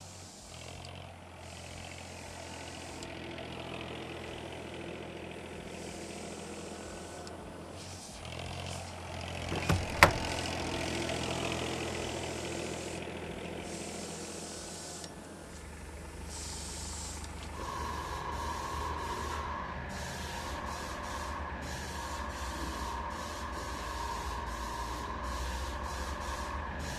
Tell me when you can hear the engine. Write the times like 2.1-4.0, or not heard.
0.0-26.9.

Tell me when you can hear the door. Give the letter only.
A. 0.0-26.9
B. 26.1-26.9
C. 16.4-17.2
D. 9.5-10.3
D.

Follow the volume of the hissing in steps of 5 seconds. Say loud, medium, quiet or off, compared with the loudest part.
quiet, quiet, medium, loud, loud, loud.